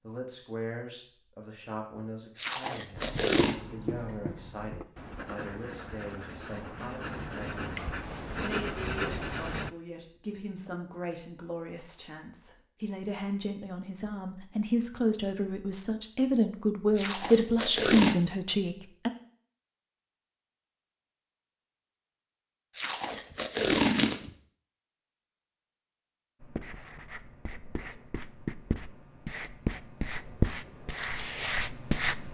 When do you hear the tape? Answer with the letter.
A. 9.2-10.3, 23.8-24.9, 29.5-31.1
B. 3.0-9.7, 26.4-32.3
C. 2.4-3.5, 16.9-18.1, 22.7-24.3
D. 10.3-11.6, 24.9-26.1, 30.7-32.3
C.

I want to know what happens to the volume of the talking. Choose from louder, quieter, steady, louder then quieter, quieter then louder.
louder.